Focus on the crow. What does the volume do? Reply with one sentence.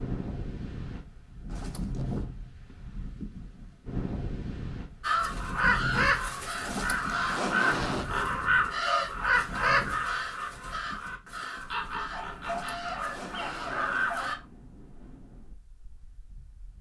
The volume of the crow goes down.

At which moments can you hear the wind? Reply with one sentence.
You can hear the wind from 0.0 to 16.7 s.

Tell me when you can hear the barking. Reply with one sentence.
You can hear the barking from 12.1 to 14.4 s.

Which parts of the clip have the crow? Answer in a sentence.
The crow can be heard from 5.0 to 14.3 s.